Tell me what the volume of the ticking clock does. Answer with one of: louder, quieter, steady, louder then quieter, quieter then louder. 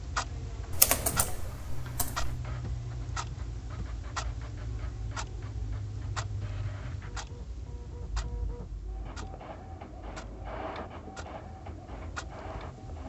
quieter.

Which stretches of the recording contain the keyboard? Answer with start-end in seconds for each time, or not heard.
0.7-2.4.